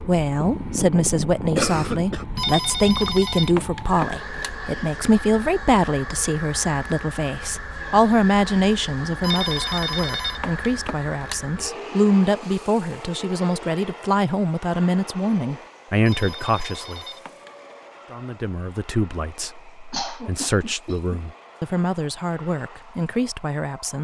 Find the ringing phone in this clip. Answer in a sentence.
The ringing phone can be heard from 2.4 to 4.6 s, from 9.2 to 11.4 s and from 16.1 to 17.6 s.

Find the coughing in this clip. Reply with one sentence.
The coughing can be heard from 0.3 to 2.2 s and from 19.9 to 21.2 s.